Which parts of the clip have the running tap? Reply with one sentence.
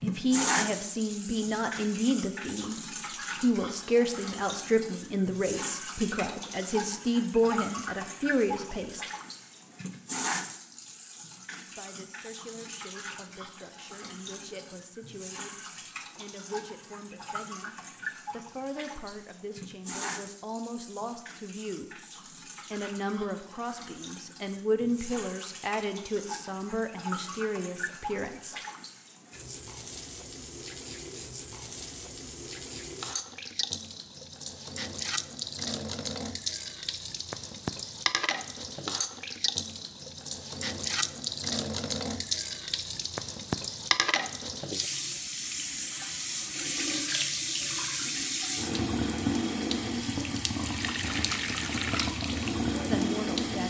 You can hear the running tap from 0.0 to 53.6 s.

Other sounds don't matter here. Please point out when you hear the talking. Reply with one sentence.
The talking can be heard from 0.0 to 2.8 s, from 3.4 to 9.1 s, from 11.8 to 22.0 s, from 22.7 to 28.6 s and from 52.6 to 53.6 s.